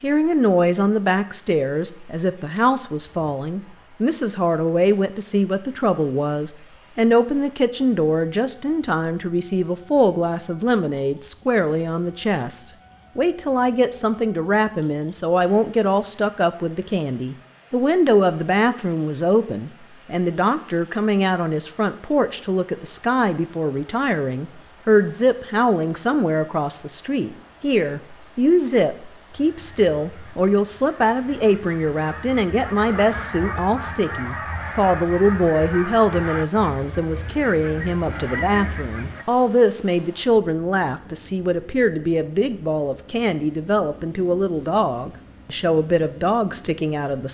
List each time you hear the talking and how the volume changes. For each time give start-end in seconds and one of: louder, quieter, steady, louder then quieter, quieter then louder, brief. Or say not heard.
0.0-47.2 steady.